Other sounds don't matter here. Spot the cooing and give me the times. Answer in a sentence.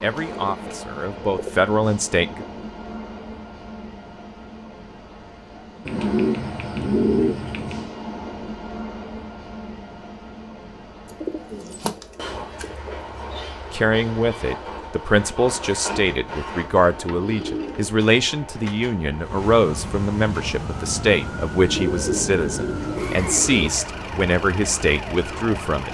You can hear the cooing from 0.1 to 1.7 s, from 5.8 to 7.9 s, from 11.2 to 12.7 s, from 16.9 to 18.8 s and from 21.6 to 23.7 s.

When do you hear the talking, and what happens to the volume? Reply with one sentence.
The talking can be heard briefly from 0.0 to 2.5 s; and from 13.7 to 25.8 s, at a steady volume.